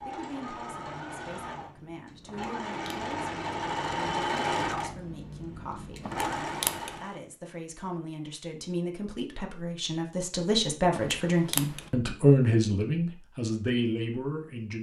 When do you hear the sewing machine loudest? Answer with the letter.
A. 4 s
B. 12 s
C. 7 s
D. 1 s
A.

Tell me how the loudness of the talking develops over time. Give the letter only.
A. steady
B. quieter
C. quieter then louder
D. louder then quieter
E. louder
E.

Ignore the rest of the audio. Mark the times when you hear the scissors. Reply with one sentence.
The scissors can be heard from 2.2 to 3.0 s, from 6.0 to 7.0 s and from 10.9 to 11.9 s.